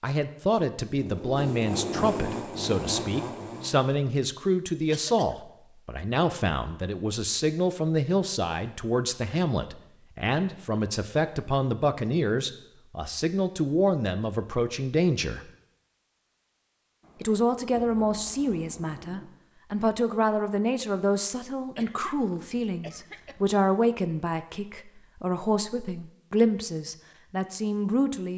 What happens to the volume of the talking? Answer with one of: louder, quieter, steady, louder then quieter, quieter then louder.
steady.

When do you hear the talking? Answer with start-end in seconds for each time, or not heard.
0.0-15.5, 17.2-28.3.